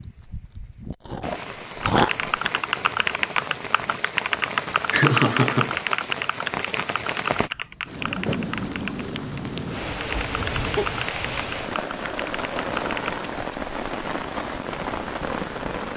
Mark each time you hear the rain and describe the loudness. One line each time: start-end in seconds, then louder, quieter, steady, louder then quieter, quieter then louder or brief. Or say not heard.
0.0-15.9 louder.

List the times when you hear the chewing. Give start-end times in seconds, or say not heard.
0.0-2.2.